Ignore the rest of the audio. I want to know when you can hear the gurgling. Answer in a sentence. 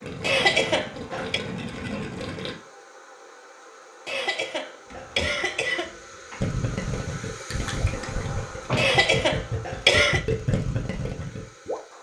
The gurgling can be heard from 0.0 to 2.5 s and from 6.4 to 11.8 s.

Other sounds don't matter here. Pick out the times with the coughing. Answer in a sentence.
The coughing can be heard from 0.2 to 1.4 s, from 4.0 to 6.0 s and from 8.8 to 10.2 s.